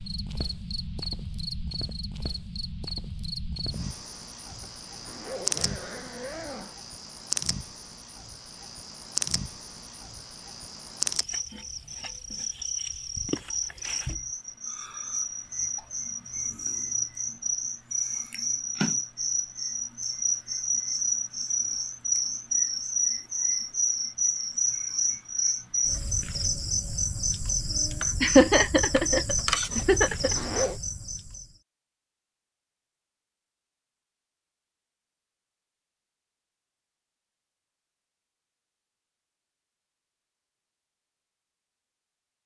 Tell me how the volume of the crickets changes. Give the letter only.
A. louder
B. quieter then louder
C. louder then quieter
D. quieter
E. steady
A.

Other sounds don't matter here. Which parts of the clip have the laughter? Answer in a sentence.
The laughter can be heard from 28.2 to 30.4 s.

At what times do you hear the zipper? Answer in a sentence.
The zipper can be heard from 4.5 to 6.8 s and from 29.8 to 30.8 s.